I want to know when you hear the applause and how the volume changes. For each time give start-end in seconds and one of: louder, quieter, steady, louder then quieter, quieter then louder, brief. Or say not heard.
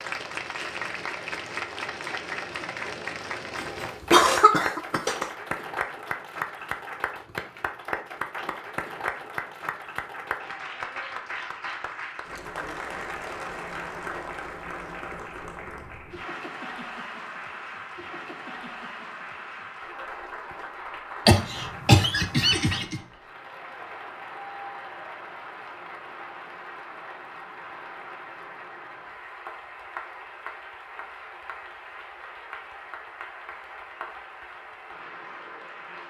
0.0-36.0 quieter.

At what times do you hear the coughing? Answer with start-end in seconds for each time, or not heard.
3.5-5.2, 21.2-23.0.